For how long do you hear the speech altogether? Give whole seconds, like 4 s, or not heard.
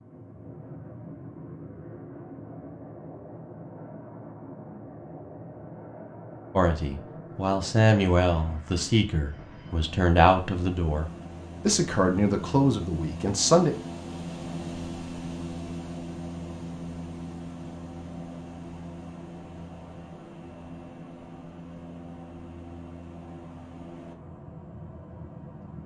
7 s.